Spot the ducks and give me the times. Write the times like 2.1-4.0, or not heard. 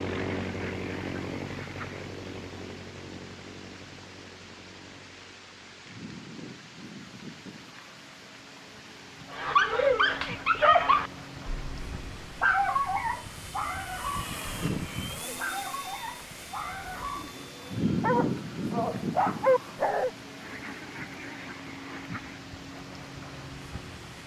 0.1-2.0, 20.4-22.4.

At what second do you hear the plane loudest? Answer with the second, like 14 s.
18 s.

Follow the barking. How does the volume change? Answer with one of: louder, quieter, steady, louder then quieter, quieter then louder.
quieter then louder.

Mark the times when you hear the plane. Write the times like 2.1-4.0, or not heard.
0.0-24.2.